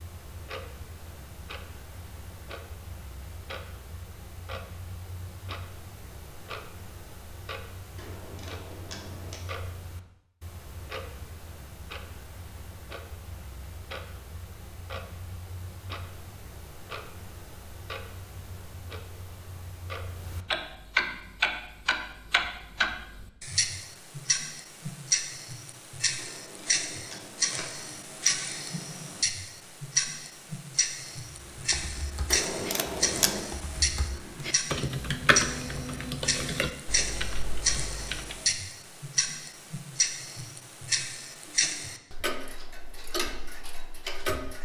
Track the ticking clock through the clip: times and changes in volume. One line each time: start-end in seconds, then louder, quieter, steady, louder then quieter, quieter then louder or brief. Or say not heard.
0.0-44.6 louder.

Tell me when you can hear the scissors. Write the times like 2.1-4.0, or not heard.
8.0-9.4, 26.1-27.9, 32.3-33.5.